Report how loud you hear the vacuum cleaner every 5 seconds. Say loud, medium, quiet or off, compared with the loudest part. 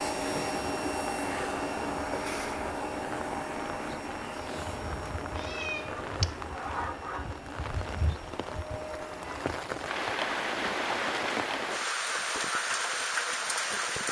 loud, medium, off.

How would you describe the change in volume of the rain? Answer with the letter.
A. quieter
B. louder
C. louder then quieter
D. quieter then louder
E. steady
B.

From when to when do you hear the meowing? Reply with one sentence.
The meowing can be heard from 5.2 to 6.4 s.